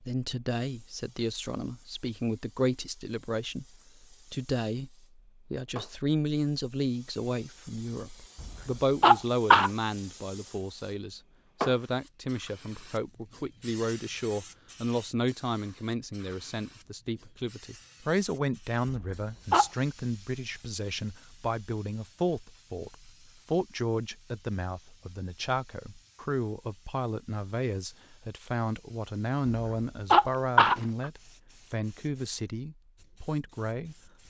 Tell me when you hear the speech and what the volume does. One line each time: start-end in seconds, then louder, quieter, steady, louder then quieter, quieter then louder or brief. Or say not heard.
0.0-34.2 steady.